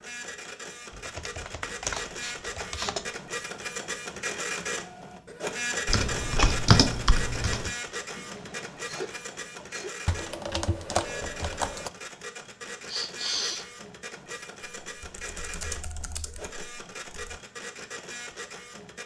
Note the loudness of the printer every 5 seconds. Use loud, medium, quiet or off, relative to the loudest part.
loud, loud, medium, medium.